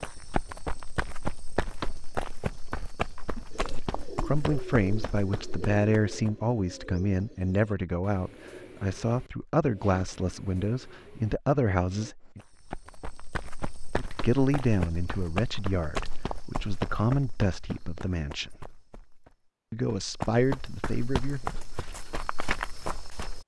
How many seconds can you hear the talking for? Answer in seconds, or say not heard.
15 s.